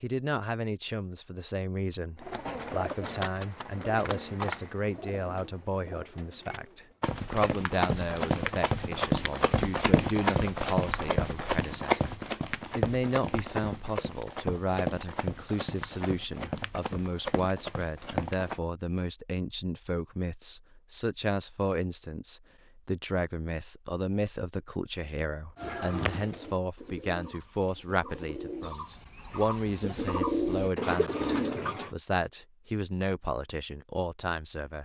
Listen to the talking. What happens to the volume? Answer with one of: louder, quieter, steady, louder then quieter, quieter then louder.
steady.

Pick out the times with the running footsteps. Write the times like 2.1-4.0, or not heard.
7.0-18.6.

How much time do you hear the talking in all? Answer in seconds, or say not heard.
34 s.